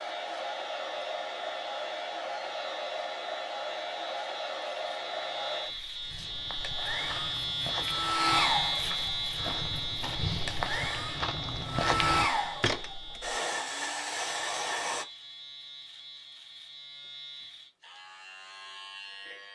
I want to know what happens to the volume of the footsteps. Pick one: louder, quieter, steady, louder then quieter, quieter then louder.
louder.